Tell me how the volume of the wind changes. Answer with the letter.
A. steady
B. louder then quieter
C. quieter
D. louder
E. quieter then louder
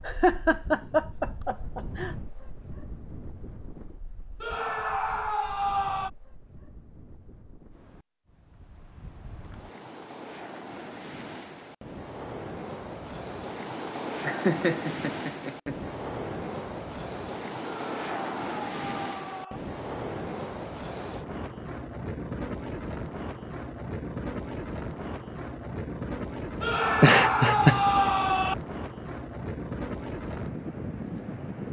D.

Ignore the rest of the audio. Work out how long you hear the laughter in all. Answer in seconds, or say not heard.
5 s.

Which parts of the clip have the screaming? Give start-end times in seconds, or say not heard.
4.4-6.1, 17.9-19.6, 26.6-28.6.